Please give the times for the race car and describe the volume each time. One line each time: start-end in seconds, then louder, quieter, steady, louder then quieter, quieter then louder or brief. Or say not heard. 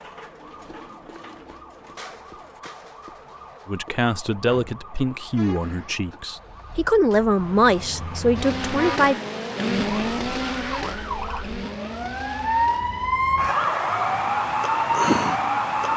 8.3-15.9 quieter.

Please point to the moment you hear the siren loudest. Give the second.
15 s.